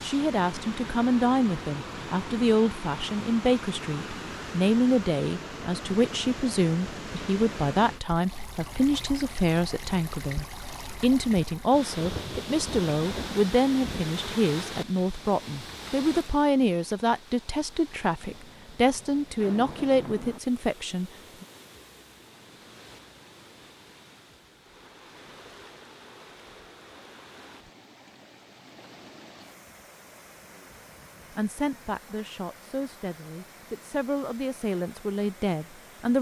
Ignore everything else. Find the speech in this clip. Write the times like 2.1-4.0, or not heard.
0.0-21.4, 31.4-36.1.